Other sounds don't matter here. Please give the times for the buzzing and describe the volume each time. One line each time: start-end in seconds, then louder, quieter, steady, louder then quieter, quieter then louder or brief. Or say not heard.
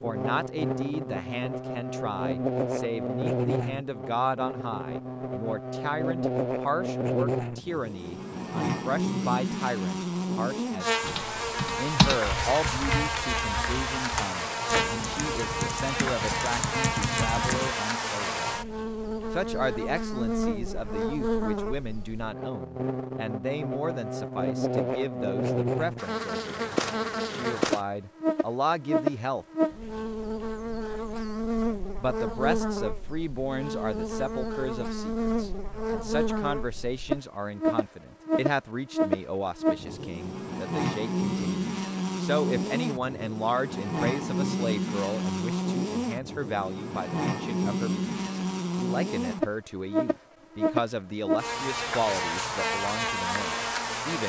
0.0-54.2 steady.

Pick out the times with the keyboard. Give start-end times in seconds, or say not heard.
11.0-17.8.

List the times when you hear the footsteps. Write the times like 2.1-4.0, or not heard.
not heard.